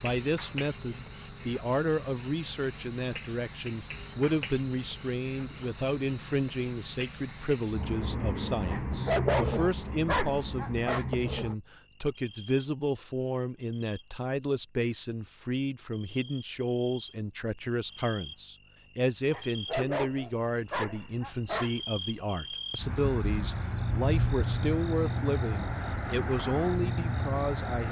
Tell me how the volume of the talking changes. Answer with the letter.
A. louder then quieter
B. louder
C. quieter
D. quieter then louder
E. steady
E.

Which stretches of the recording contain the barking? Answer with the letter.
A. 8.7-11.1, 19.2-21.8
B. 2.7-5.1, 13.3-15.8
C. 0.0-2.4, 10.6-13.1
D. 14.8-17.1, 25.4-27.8
A.